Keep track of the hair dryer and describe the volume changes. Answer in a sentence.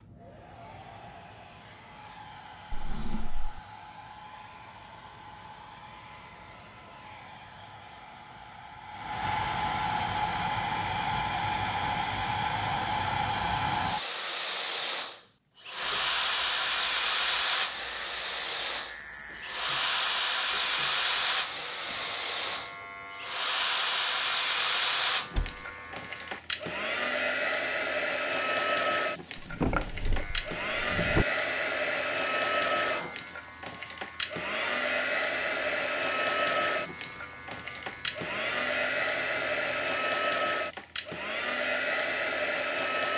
The volume of the hair dryer goes up.